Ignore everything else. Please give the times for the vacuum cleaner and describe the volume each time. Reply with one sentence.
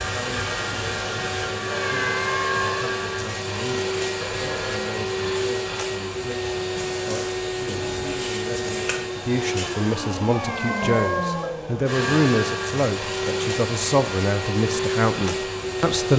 You can hear the vacuum cleaner from 0.0 to 16.1 s, at a steady volume.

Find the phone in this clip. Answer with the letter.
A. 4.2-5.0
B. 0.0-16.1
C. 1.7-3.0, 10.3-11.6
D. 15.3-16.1
A.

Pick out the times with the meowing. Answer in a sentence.
The meowing can be heard from 1.7 to 3.0 s and from 10.3 to 11.6 s.